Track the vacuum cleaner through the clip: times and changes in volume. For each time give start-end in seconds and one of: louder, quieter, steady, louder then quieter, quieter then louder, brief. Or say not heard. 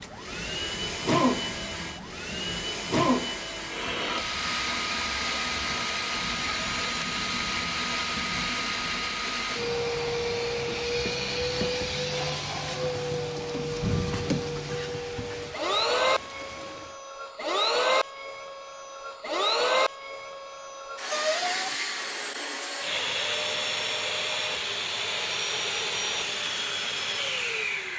0.0-27.9 steady.